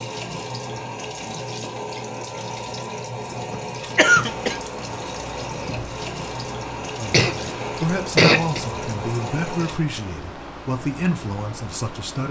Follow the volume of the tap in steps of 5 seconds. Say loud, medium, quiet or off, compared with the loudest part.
loud, loud, off.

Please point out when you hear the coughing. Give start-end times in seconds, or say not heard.
3.3-4.6, 7.1-8.6.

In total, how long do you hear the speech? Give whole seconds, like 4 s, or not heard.
5 s.